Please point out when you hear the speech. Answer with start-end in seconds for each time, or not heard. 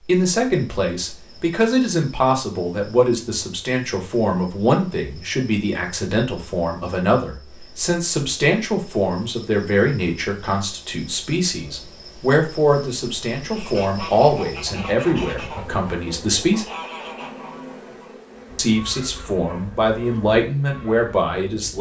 0.0-16.6, 18.6-21.7.